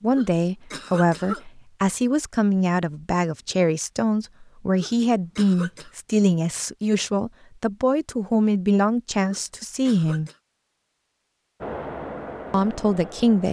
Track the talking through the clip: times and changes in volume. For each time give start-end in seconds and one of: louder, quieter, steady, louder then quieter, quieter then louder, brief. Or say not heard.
0.0-10.3 steady
12.5-13.4 brief.